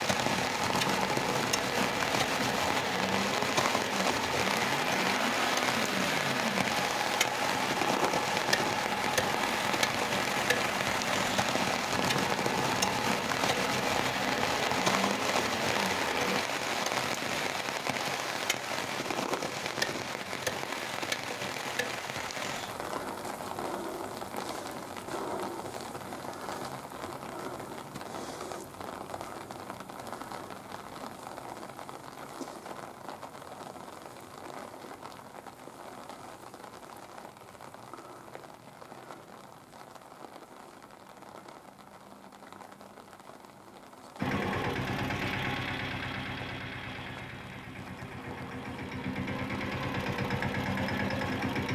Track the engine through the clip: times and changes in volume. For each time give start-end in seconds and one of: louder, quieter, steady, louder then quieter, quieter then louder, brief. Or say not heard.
0.0-16.4 steady
44.1-51.7 quieter then louder.